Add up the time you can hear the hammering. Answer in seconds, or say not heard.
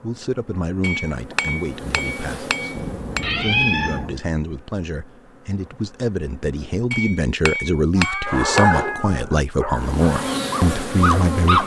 4 s.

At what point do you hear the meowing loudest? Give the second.
4 s.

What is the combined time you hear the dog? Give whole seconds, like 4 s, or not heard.
3 s.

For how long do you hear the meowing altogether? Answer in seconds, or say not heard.
3 s.